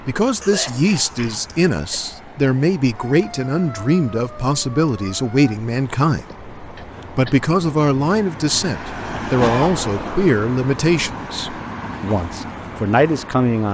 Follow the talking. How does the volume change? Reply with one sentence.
The loudness of the talking stays about the same.